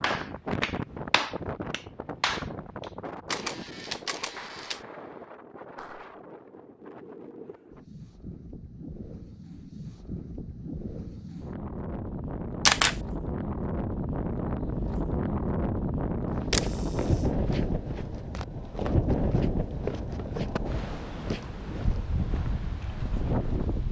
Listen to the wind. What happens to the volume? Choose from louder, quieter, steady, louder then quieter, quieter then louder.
quieter then louder.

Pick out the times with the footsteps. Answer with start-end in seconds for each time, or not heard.
16.2-22.2.